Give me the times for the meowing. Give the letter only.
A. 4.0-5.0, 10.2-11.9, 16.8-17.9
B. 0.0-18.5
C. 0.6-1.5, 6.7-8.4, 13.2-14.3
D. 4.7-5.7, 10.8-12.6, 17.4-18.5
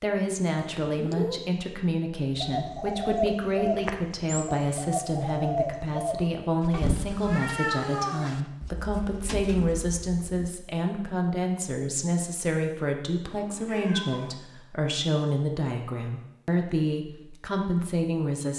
C.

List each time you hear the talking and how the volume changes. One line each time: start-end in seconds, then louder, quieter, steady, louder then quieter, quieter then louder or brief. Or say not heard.
0.0-18.5 steady.